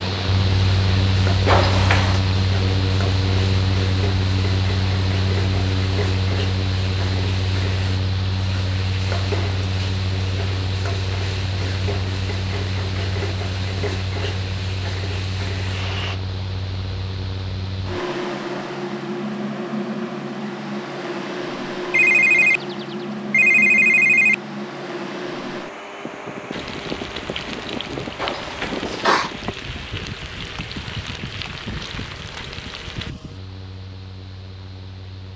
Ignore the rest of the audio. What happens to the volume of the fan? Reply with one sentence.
The loudness of the fan goes down.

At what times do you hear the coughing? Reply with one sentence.
You can hear the coughing from 1.4 to 2.2 s and from 28.1 to 29.3 s.